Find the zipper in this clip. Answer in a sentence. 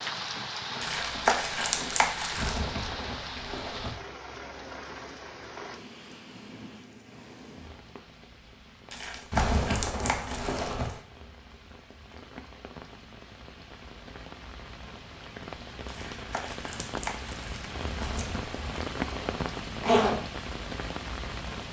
The zipper can be heard from 2.4 to 4.0 s, from 9.3 to 11.0 s and from 17.9 to 20.2 s.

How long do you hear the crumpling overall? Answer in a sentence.
The crumpling can be heard for 6 seconds in total.